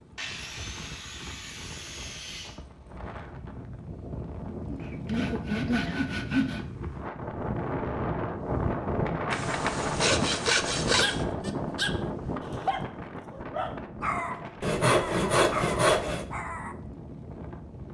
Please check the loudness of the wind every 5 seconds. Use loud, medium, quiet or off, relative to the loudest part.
medium, loud, loud, medium.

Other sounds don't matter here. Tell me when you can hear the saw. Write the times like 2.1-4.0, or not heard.
0.1-2.6, 4.7-6.7, 9.3-11.2, 14.6-16.2.